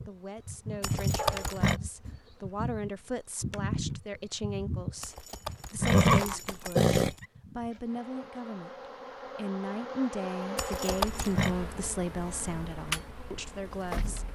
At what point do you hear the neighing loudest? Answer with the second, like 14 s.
6 s.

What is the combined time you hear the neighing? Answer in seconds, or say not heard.
4 s.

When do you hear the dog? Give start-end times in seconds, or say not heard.
1.1-2.2.